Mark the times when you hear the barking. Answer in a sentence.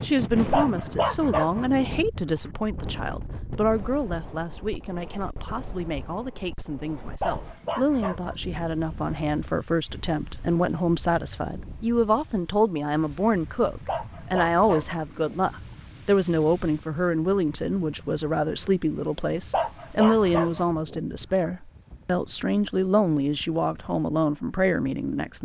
The barking can be heard from 0.5 to 2.5 s, from 7.2 to 8.6 s, from 13.8 to 15.8 s and from 19.5 to 21.1 s.